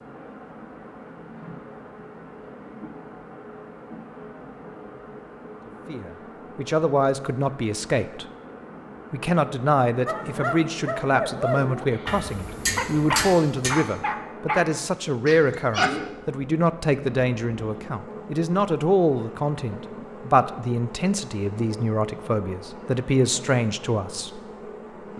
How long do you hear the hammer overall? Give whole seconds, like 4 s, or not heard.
2 s.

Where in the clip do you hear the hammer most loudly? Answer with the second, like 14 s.
13 s.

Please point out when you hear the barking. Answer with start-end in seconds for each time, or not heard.
10.1-15.9.